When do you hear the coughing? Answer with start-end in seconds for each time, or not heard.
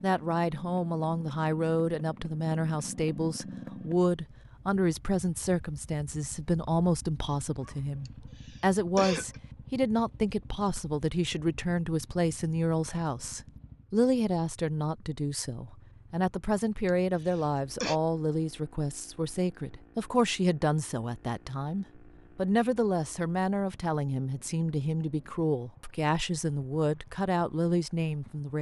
8.1-9.4, 16.9-18.0.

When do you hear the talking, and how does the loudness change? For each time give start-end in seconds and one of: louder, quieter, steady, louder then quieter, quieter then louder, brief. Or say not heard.
0.0-28.5 steady.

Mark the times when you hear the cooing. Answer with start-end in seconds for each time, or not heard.
not heard.